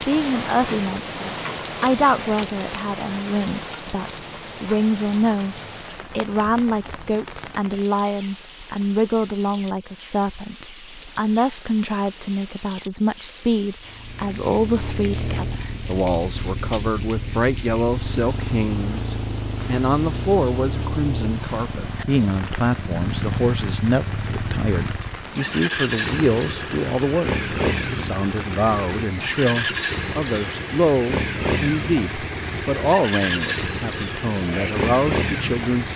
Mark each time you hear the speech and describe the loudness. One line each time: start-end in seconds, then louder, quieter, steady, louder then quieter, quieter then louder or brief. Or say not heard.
0.1-35.9 steady.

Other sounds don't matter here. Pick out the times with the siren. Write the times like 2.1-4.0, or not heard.
not heard.